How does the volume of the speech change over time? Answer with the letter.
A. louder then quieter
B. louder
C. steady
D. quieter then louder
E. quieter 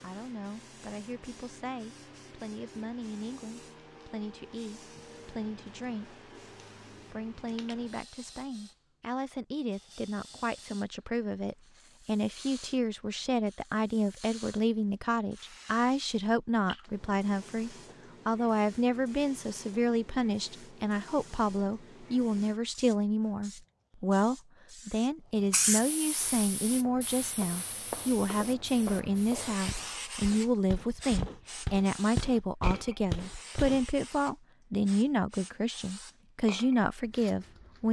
B.